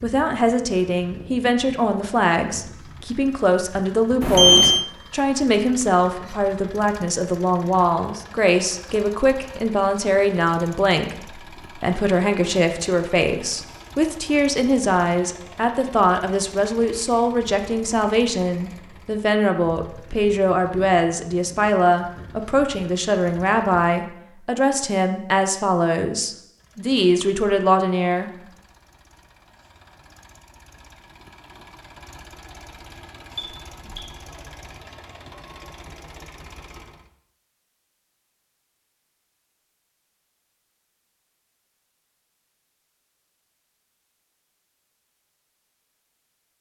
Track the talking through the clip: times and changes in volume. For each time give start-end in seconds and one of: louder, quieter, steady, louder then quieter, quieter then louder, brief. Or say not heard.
0.0-28.3 steady.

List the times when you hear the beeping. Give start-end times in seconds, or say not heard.
4.2-4.8, 33.4-34.0.